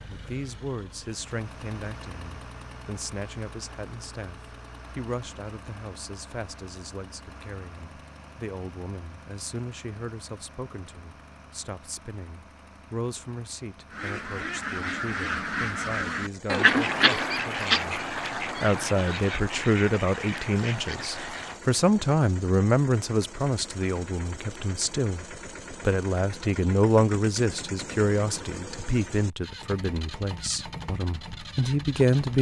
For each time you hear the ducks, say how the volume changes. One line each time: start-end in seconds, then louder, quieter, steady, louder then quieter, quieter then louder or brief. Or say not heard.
13.9-21.6 louder then quieter.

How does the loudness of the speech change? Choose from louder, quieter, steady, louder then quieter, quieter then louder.
louder.